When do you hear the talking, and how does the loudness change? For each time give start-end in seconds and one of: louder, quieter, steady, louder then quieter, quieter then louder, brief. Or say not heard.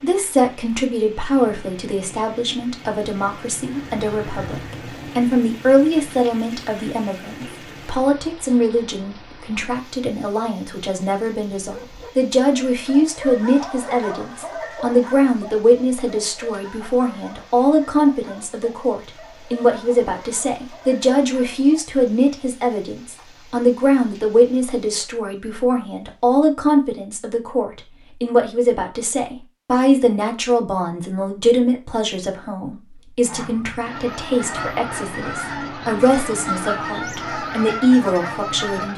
0.0-38.9 steady.